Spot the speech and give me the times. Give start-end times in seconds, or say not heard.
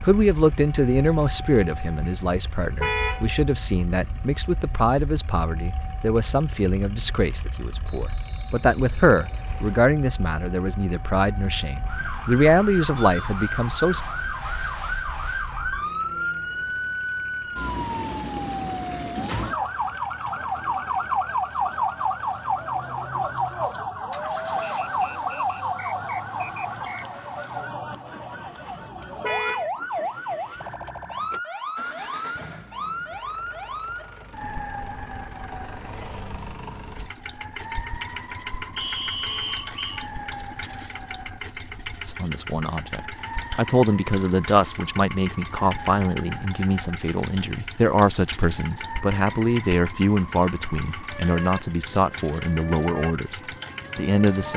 0.0-14.0, 42.0-54.5.